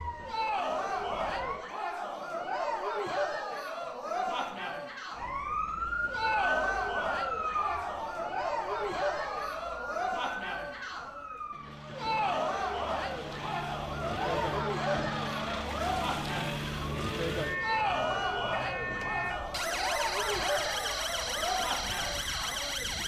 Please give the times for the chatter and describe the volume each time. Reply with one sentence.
The chatter can be heard from 0.1 to 23.0 s, at a steady volume.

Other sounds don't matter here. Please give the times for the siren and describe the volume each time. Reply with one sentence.
The siren can be heard briefly from 0.0 to 1.6 s; and from 5.2 to 23.0 s, getting quieter then louder.